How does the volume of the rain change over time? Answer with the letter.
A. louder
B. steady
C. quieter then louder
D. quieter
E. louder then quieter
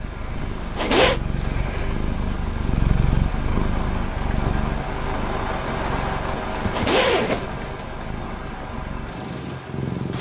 E.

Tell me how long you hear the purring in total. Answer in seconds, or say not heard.
10 s.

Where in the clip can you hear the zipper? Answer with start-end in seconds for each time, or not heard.
0.4-1.2, 6.5-7.9.